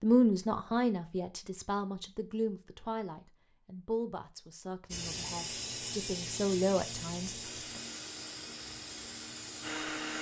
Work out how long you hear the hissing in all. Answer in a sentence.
The hissing can be heard for 5 seconds in total.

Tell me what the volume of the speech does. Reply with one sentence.
The volume of the speech goes down, then up.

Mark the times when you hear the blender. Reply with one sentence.
You can hear the blender from 7.4 to 10.1 s.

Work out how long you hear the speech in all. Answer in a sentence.
The speech can be heard for 8 seconds in total.